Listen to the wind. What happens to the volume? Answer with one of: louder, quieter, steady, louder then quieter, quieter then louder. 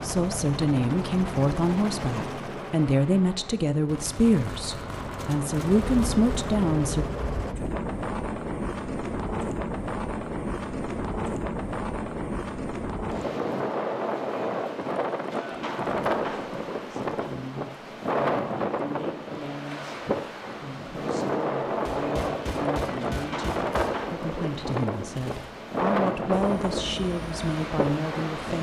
steady.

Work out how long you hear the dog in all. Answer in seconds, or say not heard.
not heard.